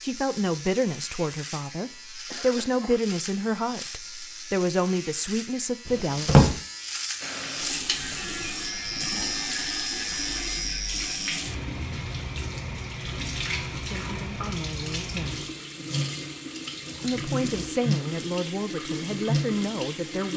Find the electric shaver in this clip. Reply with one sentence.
The electric shaver can be heard from 0.0 to 11.4 s.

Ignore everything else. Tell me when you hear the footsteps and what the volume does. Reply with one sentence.
The footsteps can't be heard in this clip.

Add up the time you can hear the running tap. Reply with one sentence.
The running tap can be heard for 13 seconds in total.